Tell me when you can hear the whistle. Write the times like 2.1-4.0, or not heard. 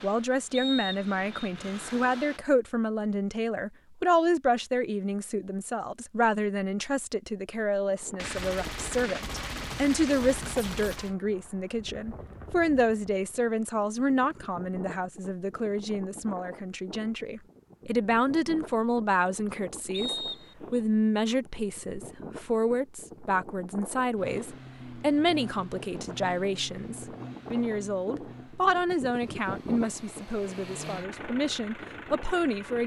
0.5-1.4, 19.9-20.8.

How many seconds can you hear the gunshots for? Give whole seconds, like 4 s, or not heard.
3 s.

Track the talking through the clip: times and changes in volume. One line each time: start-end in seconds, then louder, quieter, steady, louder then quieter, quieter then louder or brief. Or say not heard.
0.0-32.8 steady.